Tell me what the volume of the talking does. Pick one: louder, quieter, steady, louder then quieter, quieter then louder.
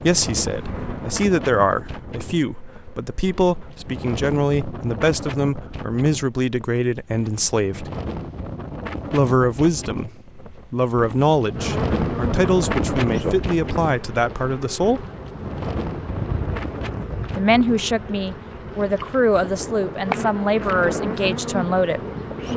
steady.